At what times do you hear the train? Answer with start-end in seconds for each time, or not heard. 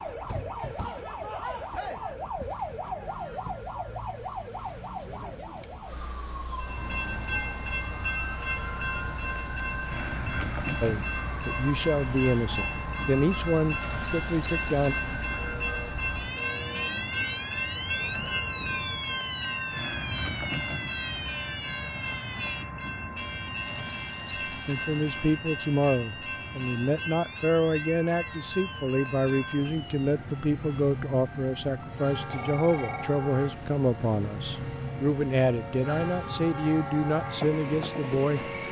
6.6-38.6.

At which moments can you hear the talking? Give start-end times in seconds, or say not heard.
10.8-14.9, 24.5-38.4.